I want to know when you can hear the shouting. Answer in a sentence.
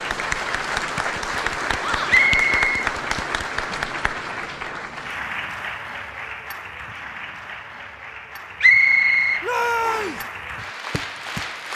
You can hear the shouting from 1.8 to 2.2 s and from 9.4 to 10.2 s.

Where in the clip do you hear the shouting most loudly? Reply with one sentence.
The volume of the shouting peaks at 10 seconds.